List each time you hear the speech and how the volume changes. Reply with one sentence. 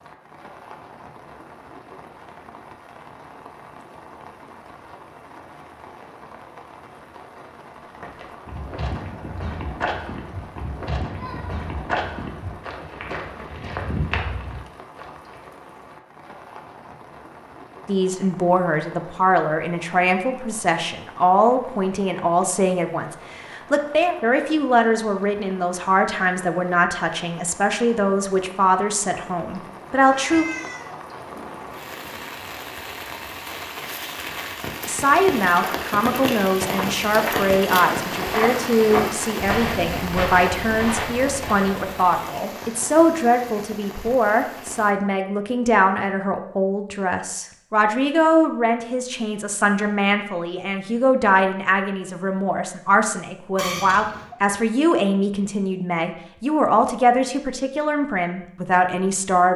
The speech can be heard from 17.9 to 30.4 s, at a steady volume; and from 34.9 to 59.5 s, at a steady volume.